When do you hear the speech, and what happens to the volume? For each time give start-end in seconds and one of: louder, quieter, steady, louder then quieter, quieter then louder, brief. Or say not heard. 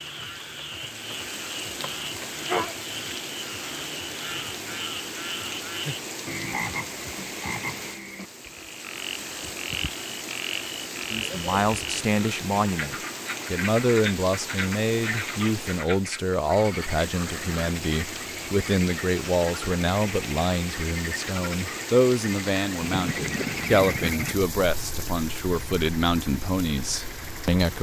11.1-27.7 steady.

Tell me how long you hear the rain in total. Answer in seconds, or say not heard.
28 s.